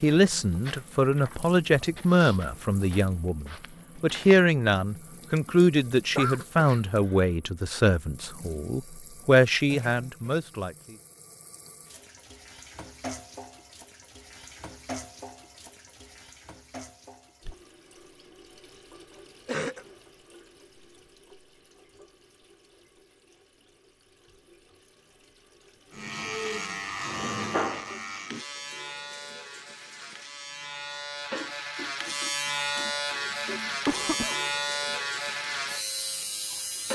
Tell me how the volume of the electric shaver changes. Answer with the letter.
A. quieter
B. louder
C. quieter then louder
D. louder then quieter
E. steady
C.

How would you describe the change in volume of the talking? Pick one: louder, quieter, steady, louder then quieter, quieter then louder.
steady.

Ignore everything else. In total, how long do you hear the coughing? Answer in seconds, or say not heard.
2 s.